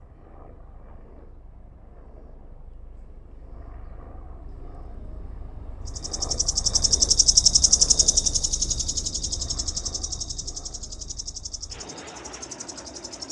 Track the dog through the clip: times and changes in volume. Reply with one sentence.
You can't hear the dog here.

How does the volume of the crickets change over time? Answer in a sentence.
The loudness of the crickets goes down.